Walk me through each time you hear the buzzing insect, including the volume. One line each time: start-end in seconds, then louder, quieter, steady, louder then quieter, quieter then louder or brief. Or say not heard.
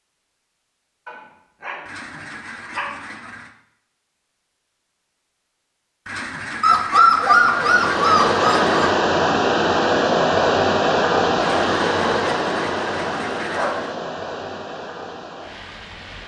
not heard.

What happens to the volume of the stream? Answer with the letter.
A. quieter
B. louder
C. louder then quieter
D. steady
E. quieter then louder
A.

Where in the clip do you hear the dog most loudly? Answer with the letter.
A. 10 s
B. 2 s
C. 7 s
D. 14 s
C.